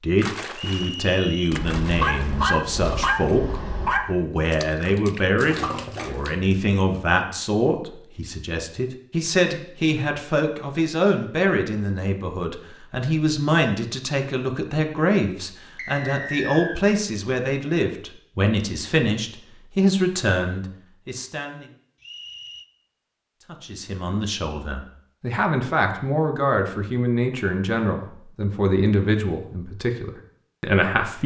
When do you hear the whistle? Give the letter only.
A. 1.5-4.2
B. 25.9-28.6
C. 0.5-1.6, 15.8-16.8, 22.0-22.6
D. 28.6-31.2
C.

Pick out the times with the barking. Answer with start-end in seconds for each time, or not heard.
1.5-4.2.